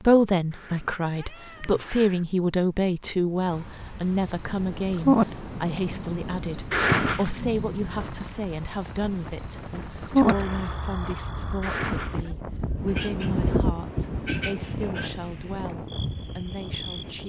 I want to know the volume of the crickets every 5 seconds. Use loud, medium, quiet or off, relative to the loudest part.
quiet, loud, loud, medium.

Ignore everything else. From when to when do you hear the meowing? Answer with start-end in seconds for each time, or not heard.
0.5-2.2, 6.7-7.3, 11.6-12.3.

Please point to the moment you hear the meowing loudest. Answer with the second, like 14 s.
7 s.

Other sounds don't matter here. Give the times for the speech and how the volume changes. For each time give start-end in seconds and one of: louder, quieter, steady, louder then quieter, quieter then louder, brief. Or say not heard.
0.0-17.2 quieter.